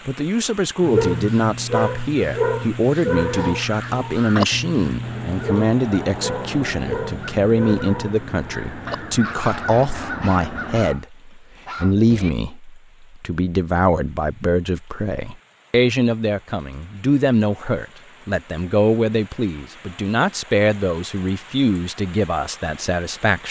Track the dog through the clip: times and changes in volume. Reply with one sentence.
You can hear the dog from 0.8 to 12.3 s, getting quieter.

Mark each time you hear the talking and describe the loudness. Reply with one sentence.
The talking can be heard from 0.1 to 23.4 s, at a steady volume.